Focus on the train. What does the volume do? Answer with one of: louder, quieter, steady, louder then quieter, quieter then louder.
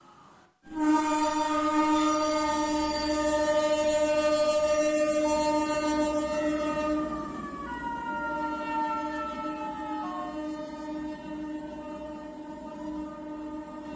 quieter.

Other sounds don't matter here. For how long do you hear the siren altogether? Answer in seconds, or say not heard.
4 s.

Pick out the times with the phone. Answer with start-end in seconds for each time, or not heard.
not heard.